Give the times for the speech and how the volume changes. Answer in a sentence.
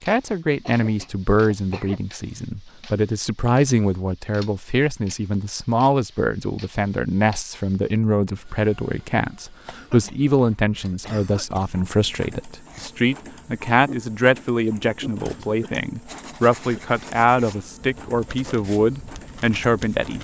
You can hear the speech from 0.0 to 20.1 s, at a steady volume.